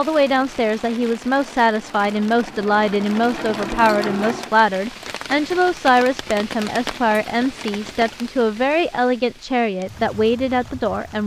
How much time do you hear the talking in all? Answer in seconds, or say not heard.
11 s.